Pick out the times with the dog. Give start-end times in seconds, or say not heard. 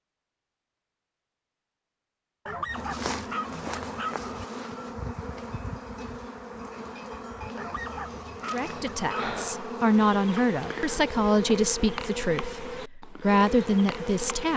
2.5-4.5, 7.5-9.3.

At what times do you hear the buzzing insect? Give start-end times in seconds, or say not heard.
2.7-14.5.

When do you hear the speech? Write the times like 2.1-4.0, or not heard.
8.5-14.5.